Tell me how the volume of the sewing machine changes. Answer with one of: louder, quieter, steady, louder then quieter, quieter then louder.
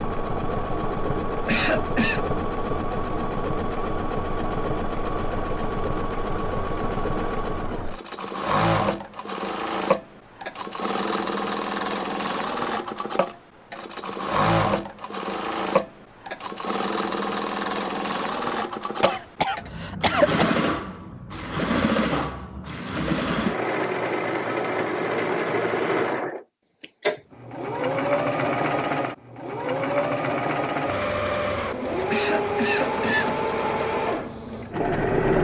steady.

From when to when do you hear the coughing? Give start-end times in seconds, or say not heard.
1.4-2.2, 19.0-20.6, 32.1-33.4.